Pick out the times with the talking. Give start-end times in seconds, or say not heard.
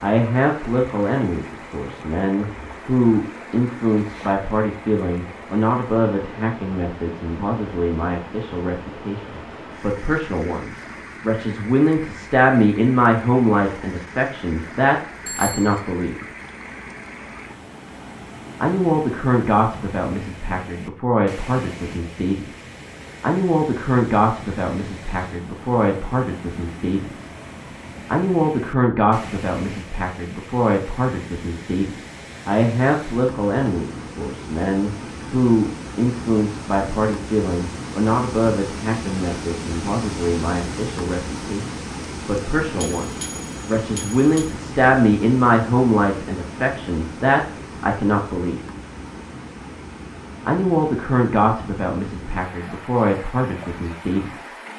0.0-16.2, 18.6-27.3, 28.1-48.7, 50.5-54.5.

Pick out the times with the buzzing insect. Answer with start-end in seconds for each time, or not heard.
not heard.